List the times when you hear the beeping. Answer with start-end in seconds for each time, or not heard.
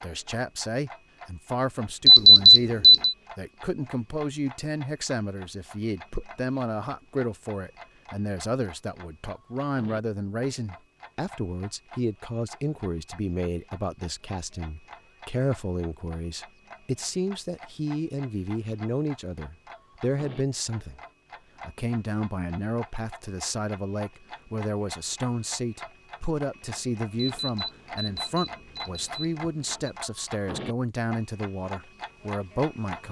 2.0-3.1, 27.1-29.9.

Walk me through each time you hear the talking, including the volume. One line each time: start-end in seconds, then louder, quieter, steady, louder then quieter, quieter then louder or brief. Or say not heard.
0.0-21.0 steady
21.6-33.0 steady.